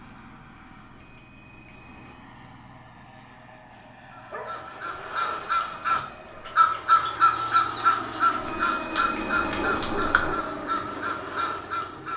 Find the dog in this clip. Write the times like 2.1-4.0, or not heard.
3.3-4.6, 9.6-10.4.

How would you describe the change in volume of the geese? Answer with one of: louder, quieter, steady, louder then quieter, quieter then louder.
louder then quieter.